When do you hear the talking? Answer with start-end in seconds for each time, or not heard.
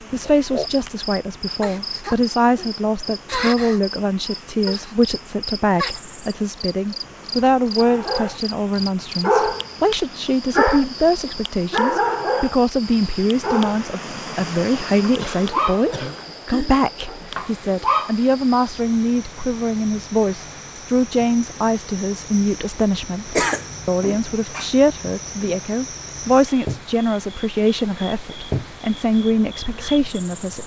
0.1-30.6.